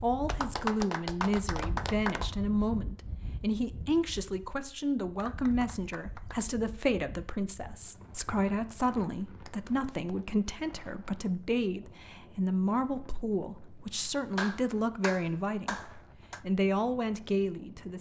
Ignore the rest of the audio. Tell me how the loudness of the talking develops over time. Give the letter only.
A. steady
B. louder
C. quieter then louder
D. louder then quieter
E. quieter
A.